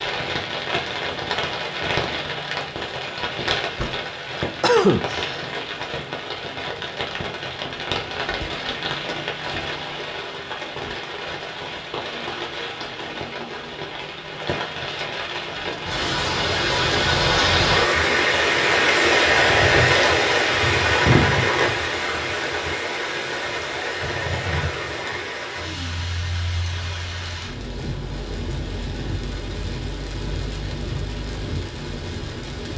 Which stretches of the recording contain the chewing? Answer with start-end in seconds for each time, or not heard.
not heard.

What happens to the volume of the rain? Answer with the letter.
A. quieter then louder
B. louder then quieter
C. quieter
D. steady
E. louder
B.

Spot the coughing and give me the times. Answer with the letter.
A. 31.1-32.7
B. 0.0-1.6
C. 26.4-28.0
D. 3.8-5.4
D.